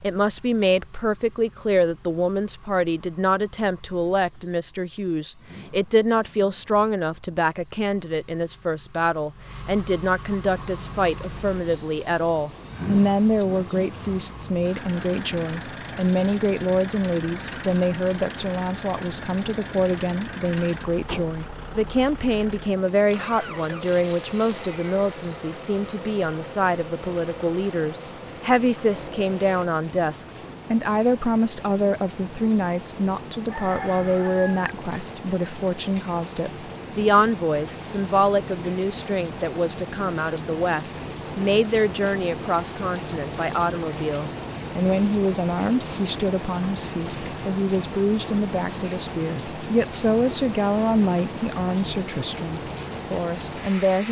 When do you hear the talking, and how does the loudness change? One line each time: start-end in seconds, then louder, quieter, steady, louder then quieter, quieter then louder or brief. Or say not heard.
0.0-54.0 steady.